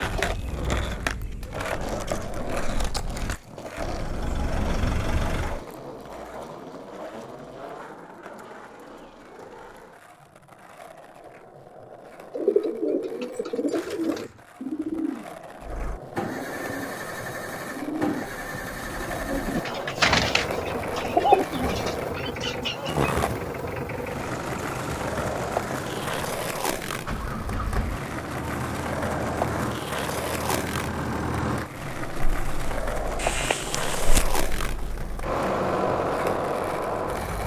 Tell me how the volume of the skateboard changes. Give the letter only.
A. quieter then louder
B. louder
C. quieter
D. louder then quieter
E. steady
A.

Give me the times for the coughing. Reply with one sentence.
You can hear the coughing from 33.1 to 34.2 s.